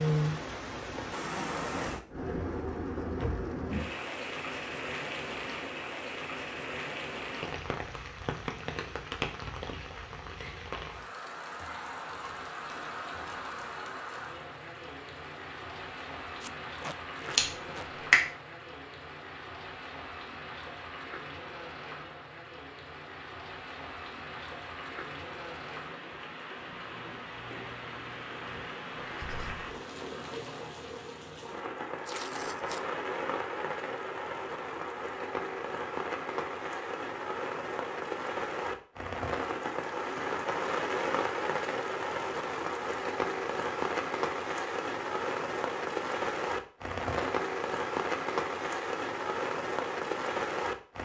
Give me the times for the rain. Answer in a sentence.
The rain can be heard from 0.0 to 51.0 s.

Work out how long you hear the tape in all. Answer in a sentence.
The tape can be heard for 2 seconds in total.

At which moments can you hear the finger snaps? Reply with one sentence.
You can hear the finger snaps from 17.4 to 18.2 s.